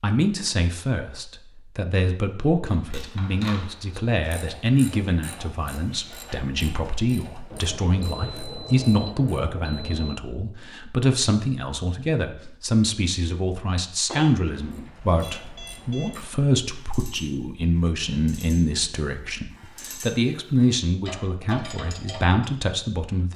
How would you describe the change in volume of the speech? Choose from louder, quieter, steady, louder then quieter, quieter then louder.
steady.